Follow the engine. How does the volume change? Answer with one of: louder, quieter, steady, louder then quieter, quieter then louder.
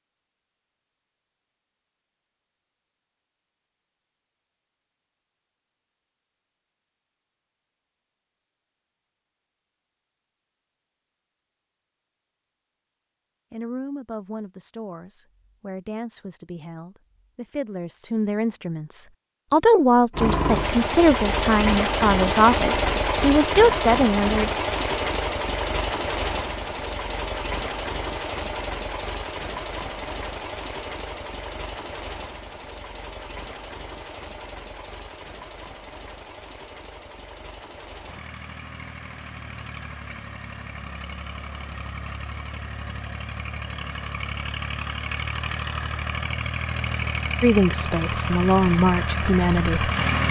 quieter then louder.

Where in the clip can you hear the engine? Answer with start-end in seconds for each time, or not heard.
20.1-50.2.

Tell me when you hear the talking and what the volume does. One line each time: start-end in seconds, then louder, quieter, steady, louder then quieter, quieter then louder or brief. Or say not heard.
13.5-24.5 louder
47.4-49.9 brief.